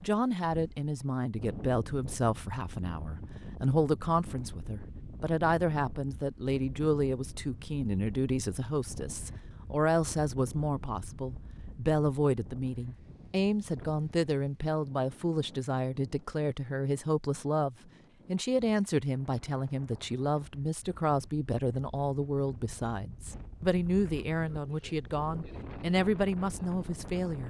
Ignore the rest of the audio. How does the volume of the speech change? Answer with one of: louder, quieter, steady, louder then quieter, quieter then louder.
steady.